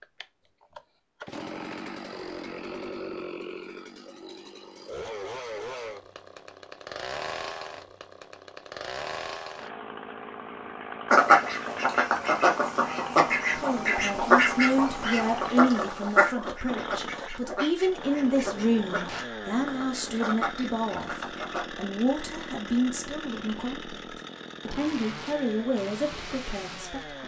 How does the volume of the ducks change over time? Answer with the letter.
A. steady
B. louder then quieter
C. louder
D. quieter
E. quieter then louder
D.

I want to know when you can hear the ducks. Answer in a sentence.
The ducks can be heard from 11.1 to 21.6 s.